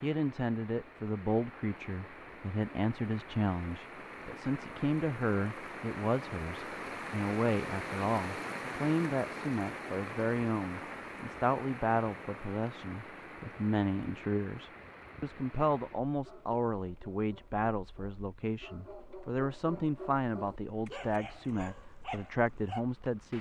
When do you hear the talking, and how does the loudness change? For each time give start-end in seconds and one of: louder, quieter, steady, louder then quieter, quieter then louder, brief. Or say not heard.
0.0-23.3 steady.